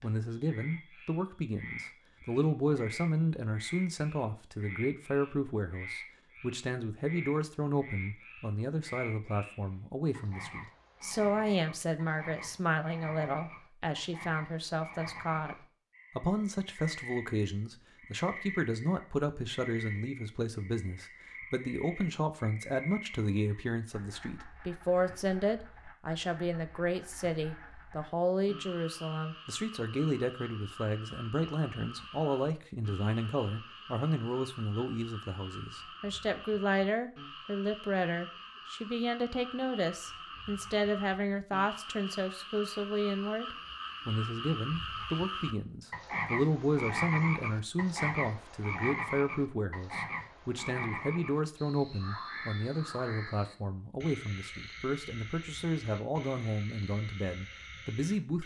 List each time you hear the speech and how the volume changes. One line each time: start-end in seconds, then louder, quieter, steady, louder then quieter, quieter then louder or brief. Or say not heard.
0.0-58.4 steady.